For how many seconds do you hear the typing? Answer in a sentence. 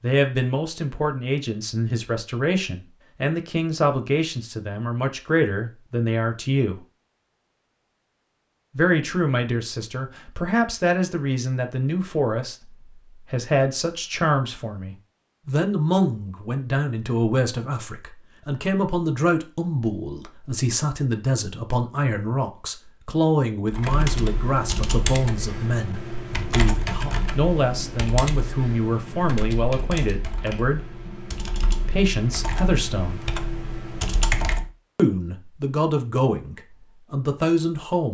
The typing can be heard for 11 seconds in total.